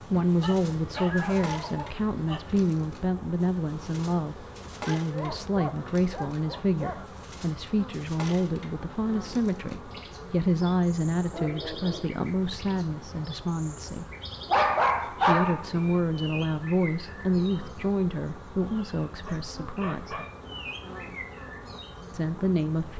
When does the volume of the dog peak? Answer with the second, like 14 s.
15 s.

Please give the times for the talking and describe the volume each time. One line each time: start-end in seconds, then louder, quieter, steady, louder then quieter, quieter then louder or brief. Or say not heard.
0.0-14.1 steady
15.1-20.2 quieter
22.1-22.9 brief.